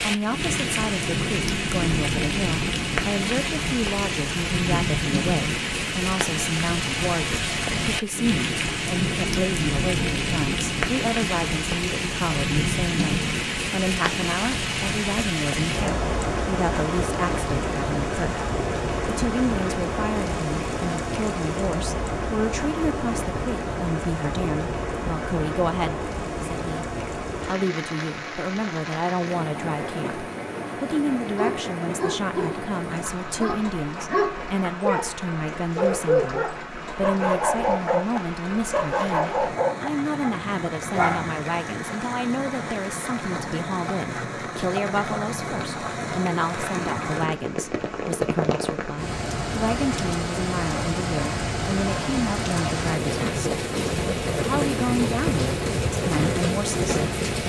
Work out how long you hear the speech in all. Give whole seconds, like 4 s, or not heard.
56 s.